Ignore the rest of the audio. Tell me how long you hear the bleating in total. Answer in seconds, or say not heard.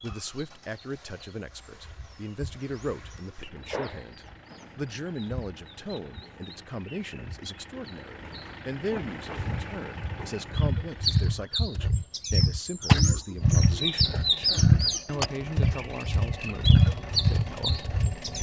not heard.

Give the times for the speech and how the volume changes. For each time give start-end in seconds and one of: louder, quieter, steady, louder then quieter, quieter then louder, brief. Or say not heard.
0.0-18.3 steady.